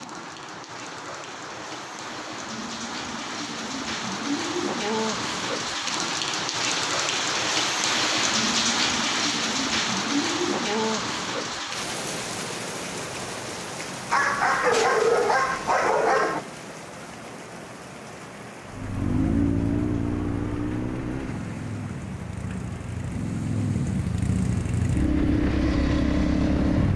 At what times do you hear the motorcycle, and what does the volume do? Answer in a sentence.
The motorcycle can be heard from 18.7 to 26.9 s, getting quieter then louder.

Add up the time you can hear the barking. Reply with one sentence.
You can hear the barking for 2 seconds altogether.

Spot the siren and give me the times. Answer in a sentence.
The siren can't be heard in this clip.